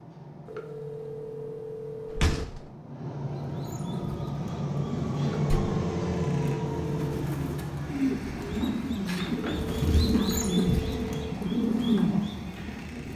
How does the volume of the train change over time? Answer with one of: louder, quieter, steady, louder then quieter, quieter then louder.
louder then quieter.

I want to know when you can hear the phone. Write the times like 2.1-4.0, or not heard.
0.5-2.5, 5.5-7.2, 9.3-11.3.